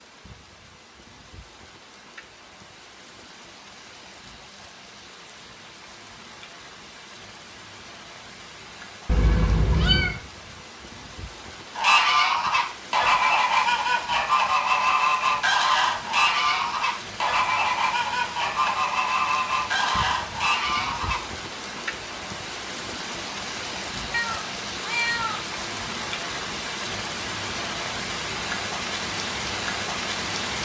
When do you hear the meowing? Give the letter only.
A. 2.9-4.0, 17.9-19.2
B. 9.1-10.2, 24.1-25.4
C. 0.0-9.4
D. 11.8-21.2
B.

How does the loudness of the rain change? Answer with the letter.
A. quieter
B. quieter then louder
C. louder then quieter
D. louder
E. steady
D.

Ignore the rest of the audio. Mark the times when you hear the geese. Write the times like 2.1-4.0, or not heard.
11.8-21.2.